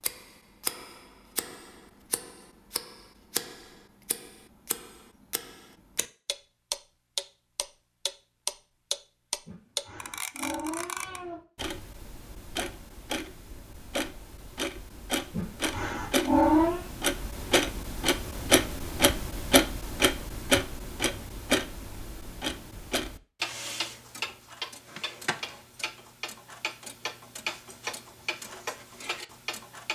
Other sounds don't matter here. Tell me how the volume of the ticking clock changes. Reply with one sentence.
The volume of the ticking clock goes up, then down.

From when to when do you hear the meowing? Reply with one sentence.
You can hear the meowing from 9.4 to 11.4 s and from 15.3 to 16.9 s.